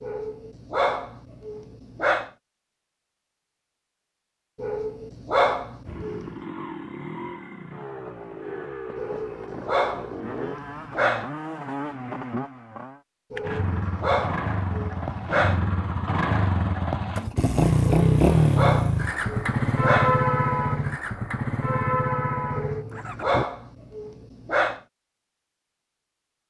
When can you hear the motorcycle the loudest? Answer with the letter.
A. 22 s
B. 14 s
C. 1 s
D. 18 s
D.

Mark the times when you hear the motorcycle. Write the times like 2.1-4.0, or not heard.
5.8-23.4.